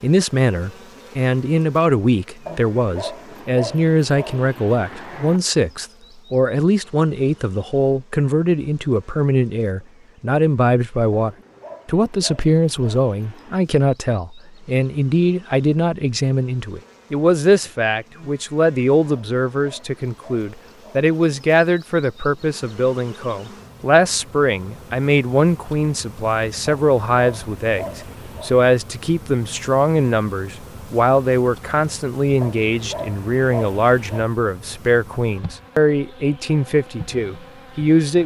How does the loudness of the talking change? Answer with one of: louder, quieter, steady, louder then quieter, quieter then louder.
steady.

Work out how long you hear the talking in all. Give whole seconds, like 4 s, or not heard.
38 s.